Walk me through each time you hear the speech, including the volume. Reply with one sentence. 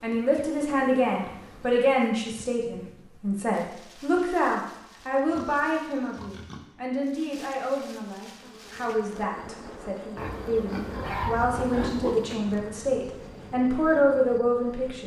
The speech can be heard from 0.0 to 15.0 s, getting quieter then louder.